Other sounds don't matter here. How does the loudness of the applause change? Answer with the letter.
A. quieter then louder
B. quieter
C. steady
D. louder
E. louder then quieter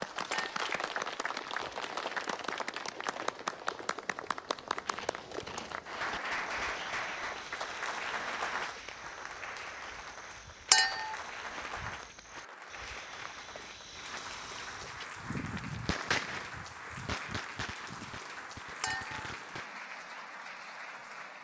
B.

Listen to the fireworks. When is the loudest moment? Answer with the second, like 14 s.
16 s.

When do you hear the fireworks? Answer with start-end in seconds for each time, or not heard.
14.8-19.8.